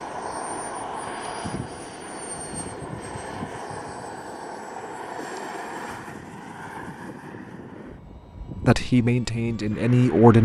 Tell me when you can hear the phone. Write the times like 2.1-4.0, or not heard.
not heard.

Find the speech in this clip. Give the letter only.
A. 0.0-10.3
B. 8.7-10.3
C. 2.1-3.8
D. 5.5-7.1
B.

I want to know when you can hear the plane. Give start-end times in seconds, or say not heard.
0.0-10.3.